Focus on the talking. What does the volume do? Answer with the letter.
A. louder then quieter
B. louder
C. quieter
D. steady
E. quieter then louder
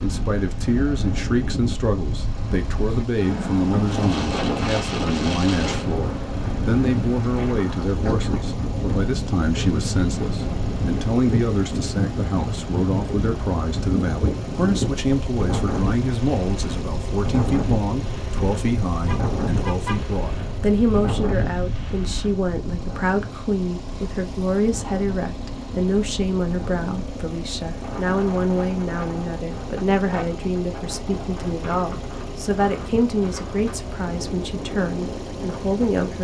D.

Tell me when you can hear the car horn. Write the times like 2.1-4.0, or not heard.
19.1-20.1.